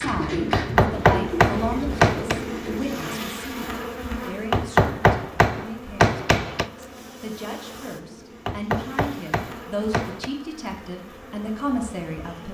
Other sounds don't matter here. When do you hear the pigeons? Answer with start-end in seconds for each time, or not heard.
0.0-3.0.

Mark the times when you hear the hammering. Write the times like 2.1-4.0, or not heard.
0.5-2.4, 4.5-6.7, 8.4-10.3.